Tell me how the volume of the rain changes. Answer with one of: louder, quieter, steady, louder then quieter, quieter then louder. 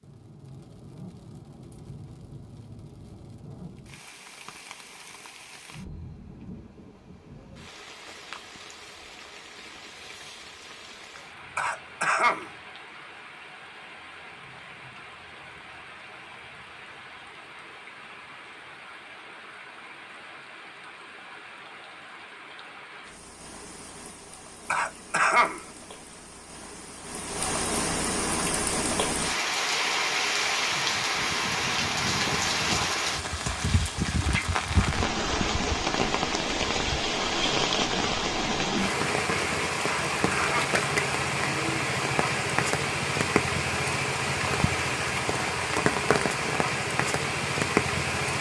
louder.